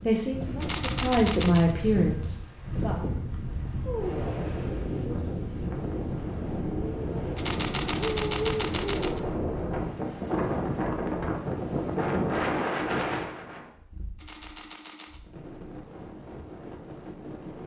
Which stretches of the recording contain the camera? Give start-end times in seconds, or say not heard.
0.6-1.8, 7.3-9.2, 14.2-15.2.